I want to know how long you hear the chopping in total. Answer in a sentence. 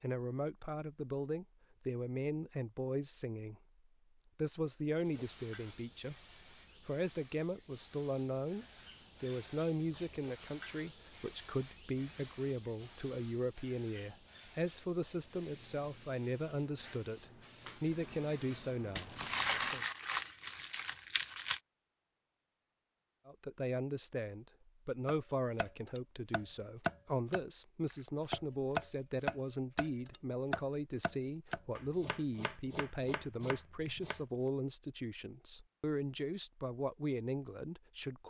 You can hear the chopping for 9 seconds altogether.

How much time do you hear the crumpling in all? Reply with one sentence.
The crumpling can be heard for 3 seconds in total.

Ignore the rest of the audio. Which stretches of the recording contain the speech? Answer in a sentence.
The speech can be heard from 0.0 to 3.6 s, from 4.3 to 6.2 s, from 6.8 to 19.9 s and from 23.2 to 38.2 s.